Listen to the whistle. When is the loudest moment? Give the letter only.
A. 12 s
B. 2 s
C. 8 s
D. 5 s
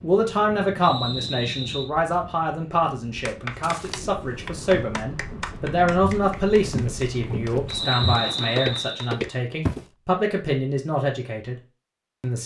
C.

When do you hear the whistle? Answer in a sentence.
The whistle can be heard from 0.8 to 1.9 s and from 7.7 to 9.2 s.